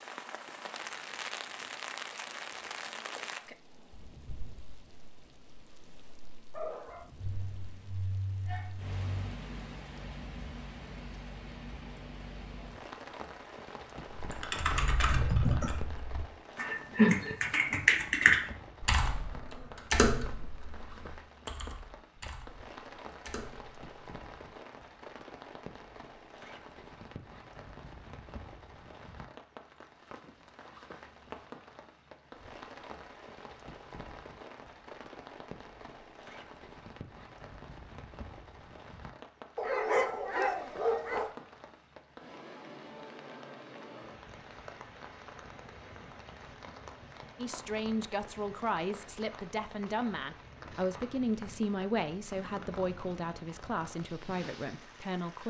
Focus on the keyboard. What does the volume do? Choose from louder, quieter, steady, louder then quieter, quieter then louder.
louder then quieter.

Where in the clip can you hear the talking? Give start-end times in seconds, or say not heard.
47.4-55.4.